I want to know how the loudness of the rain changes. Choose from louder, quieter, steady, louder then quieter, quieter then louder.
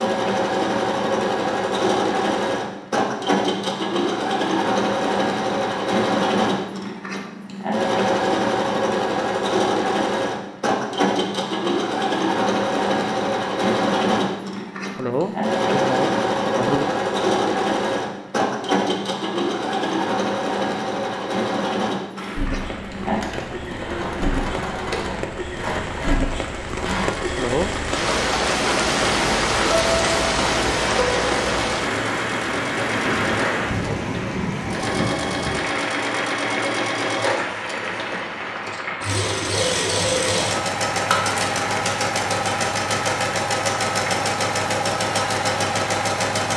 louder then quieter.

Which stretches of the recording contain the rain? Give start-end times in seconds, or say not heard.
22.1-46.4.